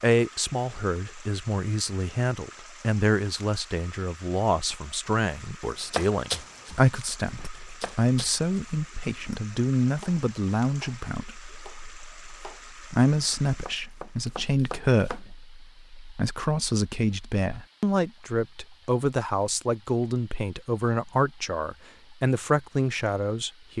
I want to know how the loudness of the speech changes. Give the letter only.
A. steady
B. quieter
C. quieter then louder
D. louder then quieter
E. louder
A.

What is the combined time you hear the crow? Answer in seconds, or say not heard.
not heard.